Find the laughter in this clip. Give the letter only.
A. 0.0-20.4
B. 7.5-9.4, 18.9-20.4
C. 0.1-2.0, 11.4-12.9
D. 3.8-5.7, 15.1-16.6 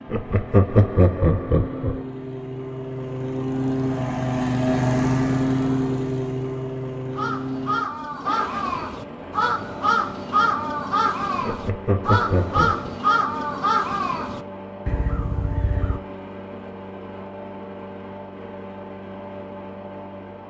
C.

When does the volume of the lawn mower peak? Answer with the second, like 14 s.
5 s.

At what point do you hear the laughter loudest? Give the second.
1 s.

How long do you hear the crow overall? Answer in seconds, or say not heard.
9 s.